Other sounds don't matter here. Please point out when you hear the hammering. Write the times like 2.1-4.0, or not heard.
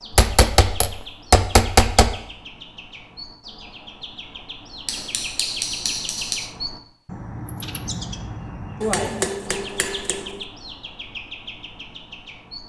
0.1-2.1, 4.8-6.5, 8.8-10.3.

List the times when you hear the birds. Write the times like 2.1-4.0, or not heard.
0.0-12.6.